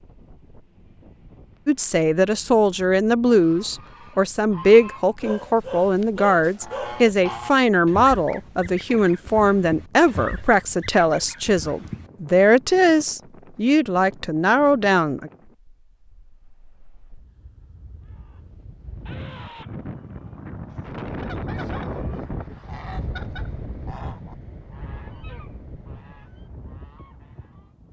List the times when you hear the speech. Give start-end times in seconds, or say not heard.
1.6-15.3.